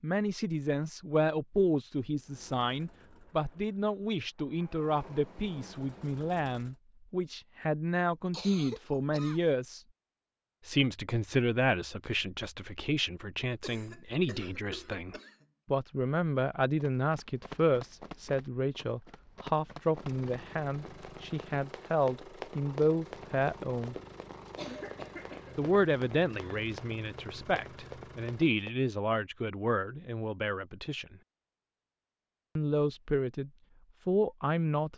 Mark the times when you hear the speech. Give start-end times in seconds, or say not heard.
0.0-9.8, 10.7-23.9, 25.6-31.1, 32.5-34.9.